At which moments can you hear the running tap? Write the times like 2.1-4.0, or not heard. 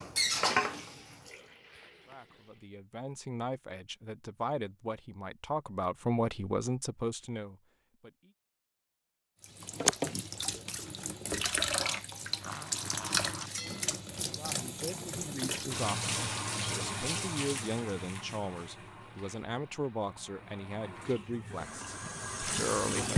0.0-2.7, 9.4-23.1.